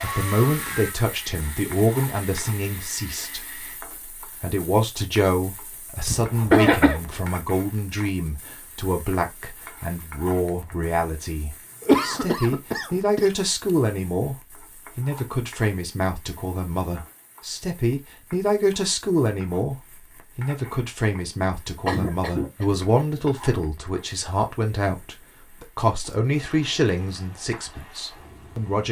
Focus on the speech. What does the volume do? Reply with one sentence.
The loudness of the speech stays about the same.